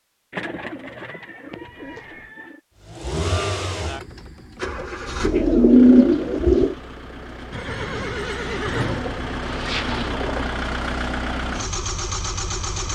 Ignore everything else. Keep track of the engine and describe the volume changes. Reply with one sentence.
The loudness of the engine goes down, then up.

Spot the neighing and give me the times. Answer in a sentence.
You can hear the neighing from 1.7 to 2.4 s and from 7.5 to 9.1 s.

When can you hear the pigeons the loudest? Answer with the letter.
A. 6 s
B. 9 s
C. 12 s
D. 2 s
A.